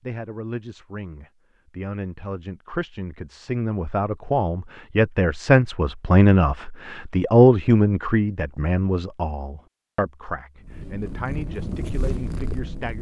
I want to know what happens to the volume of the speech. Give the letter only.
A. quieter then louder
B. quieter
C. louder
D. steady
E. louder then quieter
E.